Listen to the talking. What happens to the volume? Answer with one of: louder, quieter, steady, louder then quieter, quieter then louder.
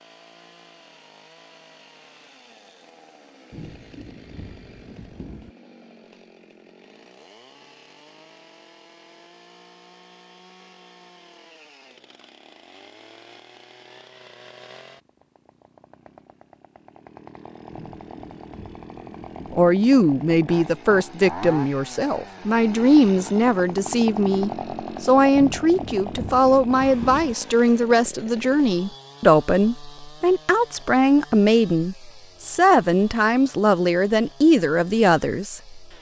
steady.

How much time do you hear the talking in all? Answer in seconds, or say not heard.
16 s.